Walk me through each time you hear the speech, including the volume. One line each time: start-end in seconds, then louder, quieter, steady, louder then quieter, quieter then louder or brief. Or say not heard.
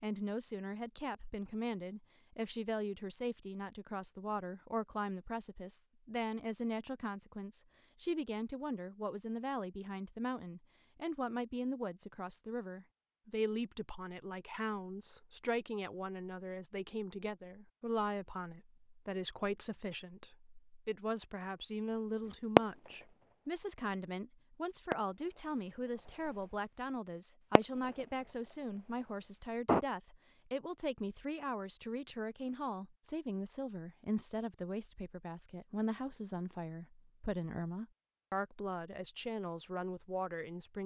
0.0-40.8 steady.